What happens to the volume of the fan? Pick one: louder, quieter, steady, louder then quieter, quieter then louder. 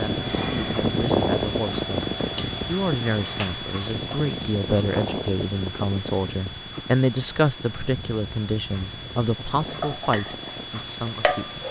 quieter.